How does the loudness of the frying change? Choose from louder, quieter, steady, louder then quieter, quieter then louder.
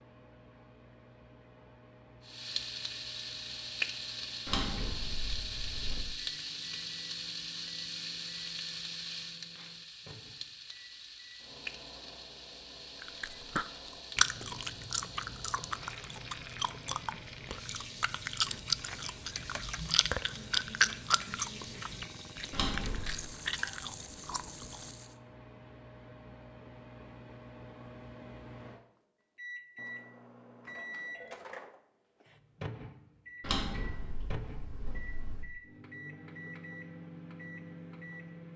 quieter.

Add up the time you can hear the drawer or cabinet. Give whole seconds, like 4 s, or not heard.
4 s.